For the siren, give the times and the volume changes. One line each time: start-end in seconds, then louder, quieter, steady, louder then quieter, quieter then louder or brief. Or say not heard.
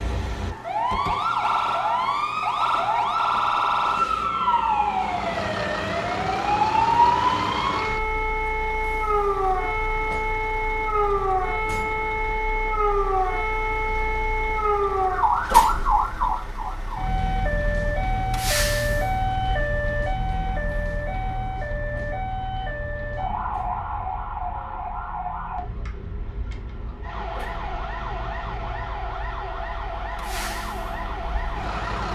0.0-32.0 quieter.